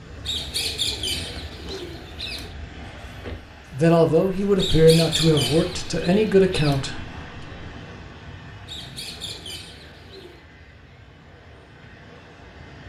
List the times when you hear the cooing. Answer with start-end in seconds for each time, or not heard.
0.2-2.5, 4.5-6.8, 8.7-10.4.